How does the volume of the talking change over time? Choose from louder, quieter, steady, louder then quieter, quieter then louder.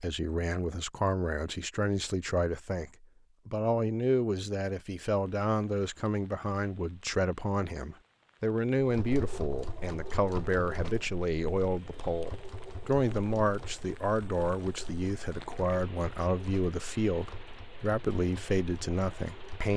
steady.